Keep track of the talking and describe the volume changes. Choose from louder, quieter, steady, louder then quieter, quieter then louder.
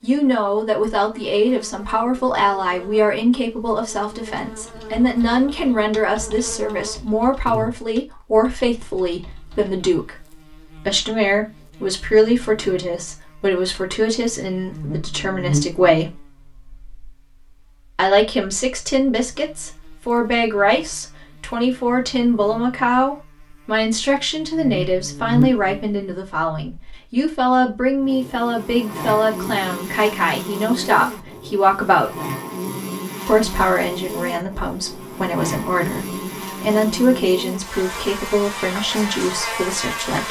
steady.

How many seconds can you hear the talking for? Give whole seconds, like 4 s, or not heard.
37 s.